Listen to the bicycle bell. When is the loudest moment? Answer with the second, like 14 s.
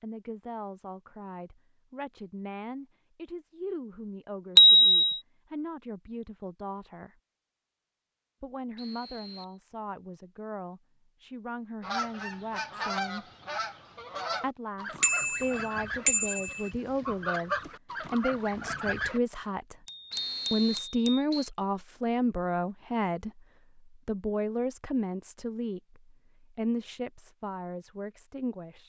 5 s.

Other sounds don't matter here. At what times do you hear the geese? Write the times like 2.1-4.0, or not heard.
11.8-19.2.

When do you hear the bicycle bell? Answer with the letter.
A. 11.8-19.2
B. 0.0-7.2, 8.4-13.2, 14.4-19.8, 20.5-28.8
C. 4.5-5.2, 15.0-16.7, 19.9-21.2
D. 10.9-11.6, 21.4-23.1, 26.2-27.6
C.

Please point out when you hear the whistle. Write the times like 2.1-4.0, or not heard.
8.8-9.6, 20.1-21.5.